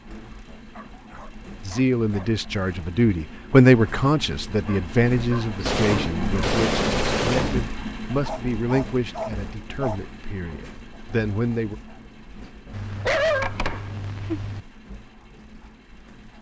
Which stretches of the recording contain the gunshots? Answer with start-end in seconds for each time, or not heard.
5.7-7.7.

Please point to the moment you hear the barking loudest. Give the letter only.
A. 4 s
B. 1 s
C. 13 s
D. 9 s
C.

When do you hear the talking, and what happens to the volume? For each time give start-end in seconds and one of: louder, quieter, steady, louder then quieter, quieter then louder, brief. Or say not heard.
1.6-11.8 quieter.